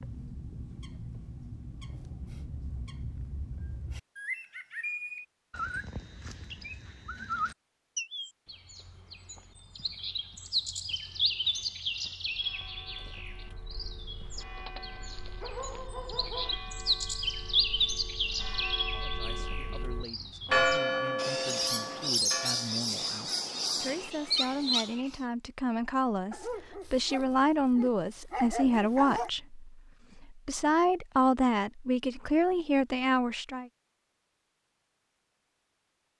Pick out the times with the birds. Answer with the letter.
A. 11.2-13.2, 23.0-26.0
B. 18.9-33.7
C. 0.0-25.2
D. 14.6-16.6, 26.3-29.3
C.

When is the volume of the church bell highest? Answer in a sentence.
The volume of the church bell peaks at 21 seconds.